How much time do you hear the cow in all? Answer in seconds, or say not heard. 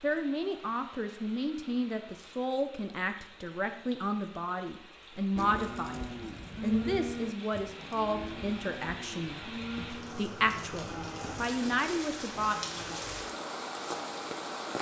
8 s.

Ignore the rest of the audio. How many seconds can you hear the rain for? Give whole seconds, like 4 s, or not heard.
15 s.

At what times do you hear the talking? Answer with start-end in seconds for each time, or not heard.
0.0-12.6.